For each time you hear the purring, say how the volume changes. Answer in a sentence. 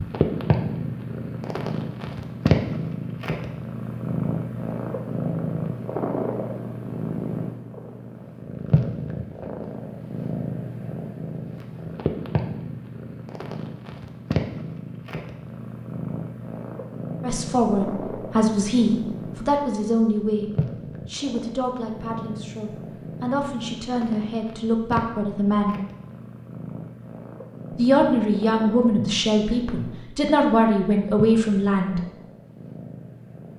You can hear the purring from 0.0 to 33.5 s, getting quieter.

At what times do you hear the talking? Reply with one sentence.
The talking can be heard from 17.2 to 25.8 s and from 27.8 to 32.0 s.